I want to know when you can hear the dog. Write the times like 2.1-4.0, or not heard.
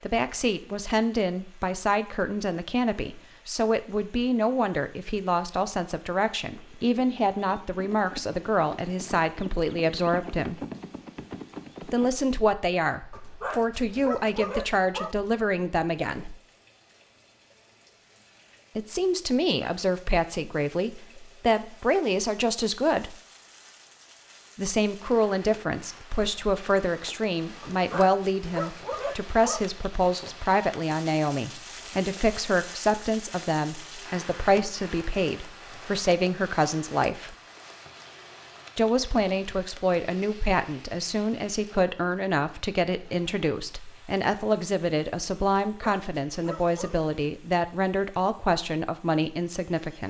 13.1-15.2, 27.6-29.6, 45.6-47.0.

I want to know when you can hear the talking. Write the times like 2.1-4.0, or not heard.
0.0-10.6, 11.8-16.4, 18.8-23.1, 24.6-37.4, 38.8-50.0.